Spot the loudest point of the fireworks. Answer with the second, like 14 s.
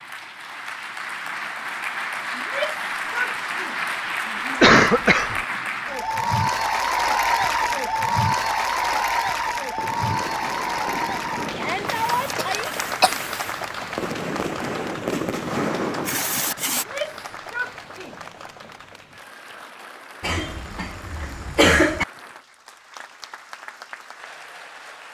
16 s.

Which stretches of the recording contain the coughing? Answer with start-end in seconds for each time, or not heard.
4.6-5.4, 12.3-13.2, 20.2-22.1.